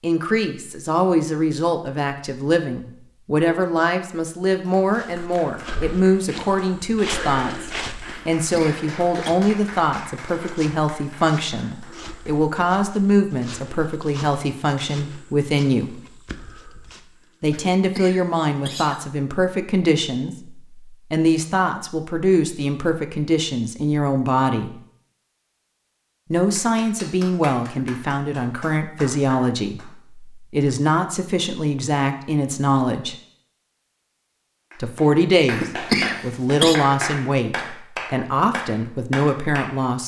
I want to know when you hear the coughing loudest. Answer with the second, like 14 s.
36 s.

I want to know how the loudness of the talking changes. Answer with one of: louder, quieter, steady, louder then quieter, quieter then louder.
steady.